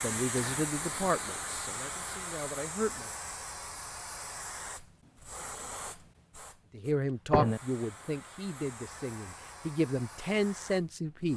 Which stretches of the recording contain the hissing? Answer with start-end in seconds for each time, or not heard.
0.0-11.3.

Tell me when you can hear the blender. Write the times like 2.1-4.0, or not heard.
not heard.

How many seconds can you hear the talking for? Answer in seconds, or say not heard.
8 s.